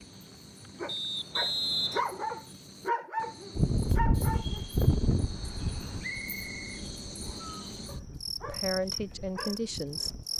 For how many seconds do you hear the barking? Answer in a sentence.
The barking can be heard for 7 seconds in total.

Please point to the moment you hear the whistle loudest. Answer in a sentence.
The volume of the whistle peaks at 2 seconds.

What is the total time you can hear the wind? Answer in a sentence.
The wind can be heard for 7 seconds in total.